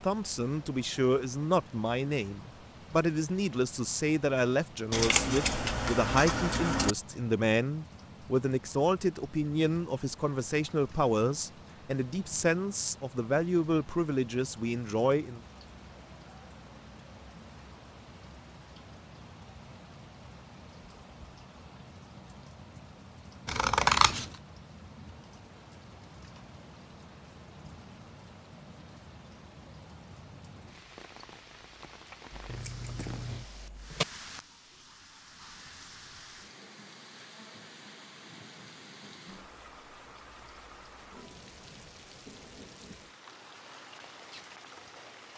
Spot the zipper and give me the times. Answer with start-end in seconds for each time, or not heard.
32.5-33.5.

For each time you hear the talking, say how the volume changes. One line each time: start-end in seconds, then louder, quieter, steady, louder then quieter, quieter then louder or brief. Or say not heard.
0.0-15.4 steady.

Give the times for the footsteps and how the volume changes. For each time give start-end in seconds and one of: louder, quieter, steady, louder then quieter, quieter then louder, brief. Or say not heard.
not heard.